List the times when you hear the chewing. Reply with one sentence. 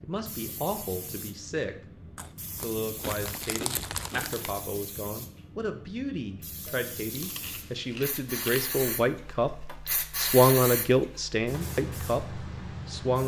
The chewing can be heard from 2.1 to 4.6 s and from 6.7 to 8.7 s.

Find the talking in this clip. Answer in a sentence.
The talking can be heard from 0.0 to 1.9 s and from 2.5 to 13.2 s.